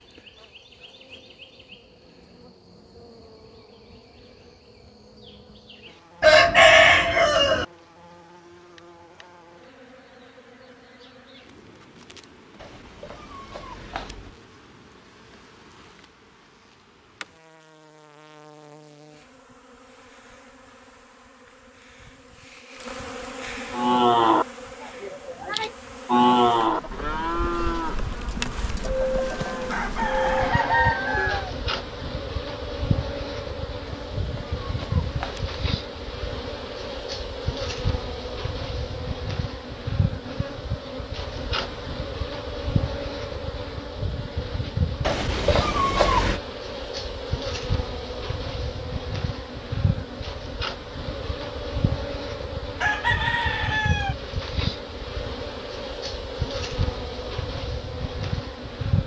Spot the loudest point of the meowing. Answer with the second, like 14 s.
46 s.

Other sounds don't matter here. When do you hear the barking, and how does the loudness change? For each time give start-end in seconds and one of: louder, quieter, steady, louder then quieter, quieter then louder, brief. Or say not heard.
not heard.